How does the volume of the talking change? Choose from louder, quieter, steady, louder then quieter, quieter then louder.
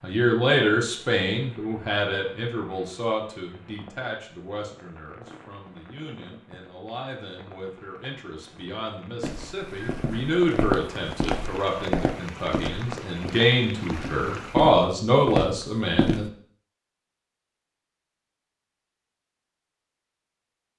quieter then louder.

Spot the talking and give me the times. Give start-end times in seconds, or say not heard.
0.0-16.2.